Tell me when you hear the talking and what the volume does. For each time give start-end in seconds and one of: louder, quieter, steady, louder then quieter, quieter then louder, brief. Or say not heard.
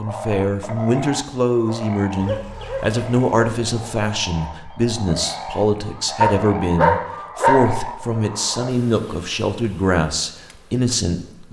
0.0-11.4 steady.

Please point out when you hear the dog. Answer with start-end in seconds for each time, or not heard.
2.2-4.0, 6.2-7.7.